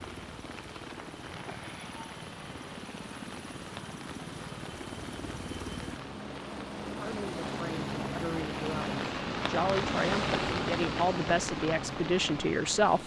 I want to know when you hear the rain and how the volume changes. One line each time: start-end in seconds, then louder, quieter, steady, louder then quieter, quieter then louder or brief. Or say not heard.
0.0-13.0 louder.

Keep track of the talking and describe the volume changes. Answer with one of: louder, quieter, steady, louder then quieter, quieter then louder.
louder.